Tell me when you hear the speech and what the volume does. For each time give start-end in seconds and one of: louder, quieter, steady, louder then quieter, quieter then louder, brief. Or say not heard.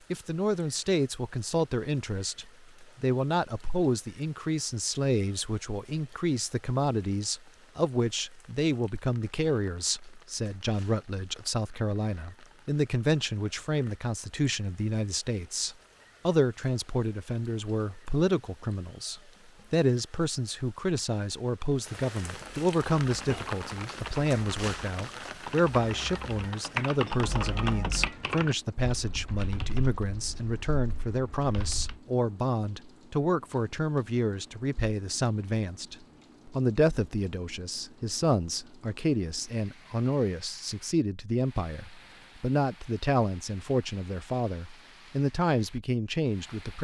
0.1-46.7 steady.